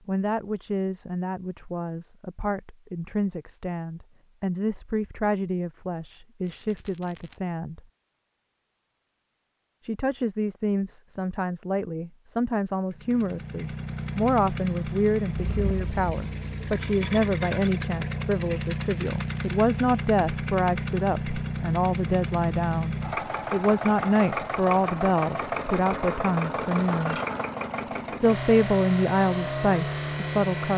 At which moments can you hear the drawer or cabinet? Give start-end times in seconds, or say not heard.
not heard.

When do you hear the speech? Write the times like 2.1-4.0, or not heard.
0.1-7.8, 9.8-27.2, 28.1-30.7.